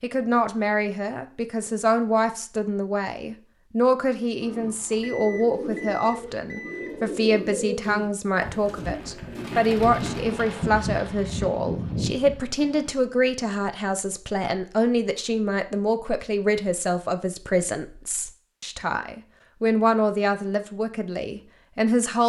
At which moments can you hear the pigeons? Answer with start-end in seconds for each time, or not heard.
4.4-12.9.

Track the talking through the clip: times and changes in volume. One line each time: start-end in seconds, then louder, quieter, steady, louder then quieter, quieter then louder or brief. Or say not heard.
0.0-22.2 steady.